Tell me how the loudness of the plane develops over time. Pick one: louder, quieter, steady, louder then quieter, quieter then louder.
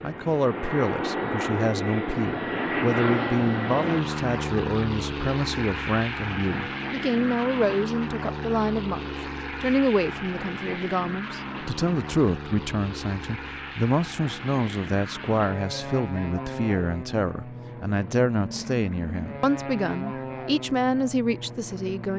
quieter.